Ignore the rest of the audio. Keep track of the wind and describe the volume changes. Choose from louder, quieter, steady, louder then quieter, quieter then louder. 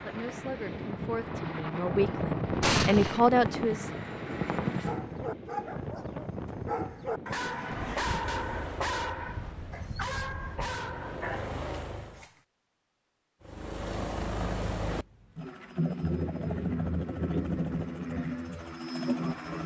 quieter.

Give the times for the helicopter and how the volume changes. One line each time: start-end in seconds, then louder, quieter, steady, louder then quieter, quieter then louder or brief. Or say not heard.
0.0-5.2 louder
7.5-12.2 quieter then louder
13.4-19.6 steady.